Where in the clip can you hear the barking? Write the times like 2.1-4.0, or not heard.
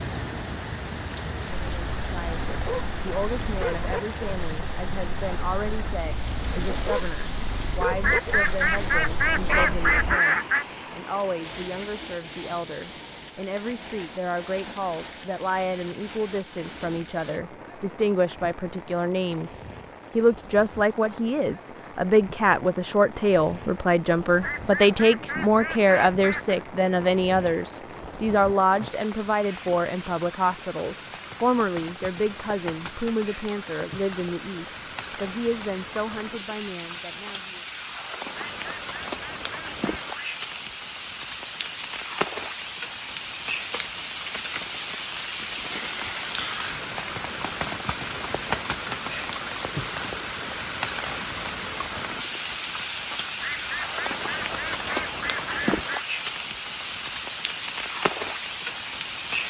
1.5-10.2.